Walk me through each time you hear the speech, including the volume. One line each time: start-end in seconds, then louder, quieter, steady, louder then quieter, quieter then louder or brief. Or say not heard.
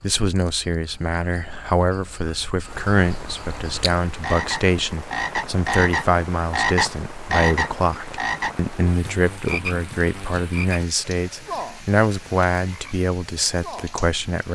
0.0-14.5 steady.